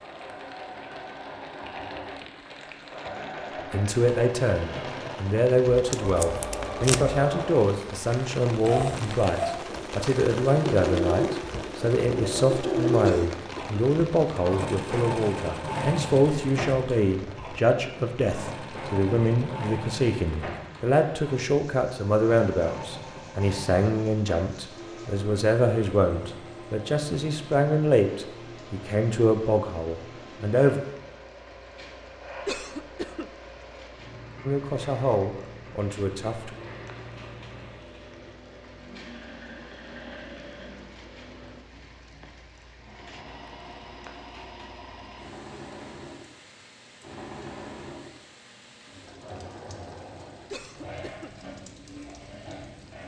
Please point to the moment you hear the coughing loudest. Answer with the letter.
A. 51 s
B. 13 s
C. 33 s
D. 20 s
C.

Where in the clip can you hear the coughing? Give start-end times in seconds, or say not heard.
13.0-13.8, 32.5-33.3, 50.5-51.3.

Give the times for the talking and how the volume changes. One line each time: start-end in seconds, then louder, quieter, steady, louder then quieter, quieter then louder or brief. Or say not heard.
3.7-30.8 steady
34.4-36.5 brief.